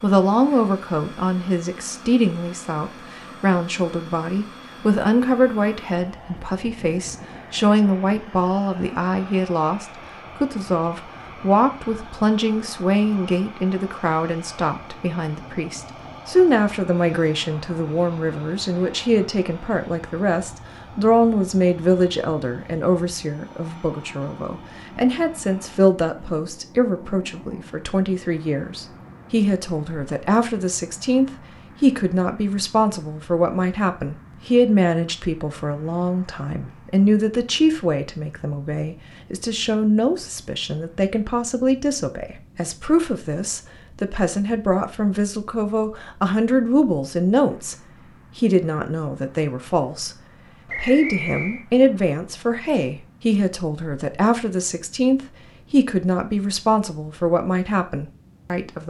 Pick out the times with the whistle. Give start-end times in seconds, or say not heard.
50.6-51.6.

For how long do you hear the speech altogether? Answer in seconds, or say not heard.
59 s.